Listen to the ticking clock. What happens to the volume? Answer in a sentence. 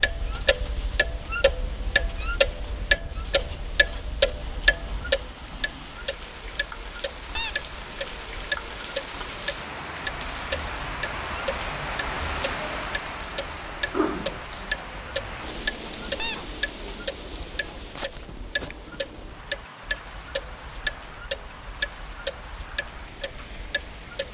The loudness of the ticking clock goes down.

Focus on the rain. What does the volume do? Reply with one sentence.
The loudness of the rain goes up, then down.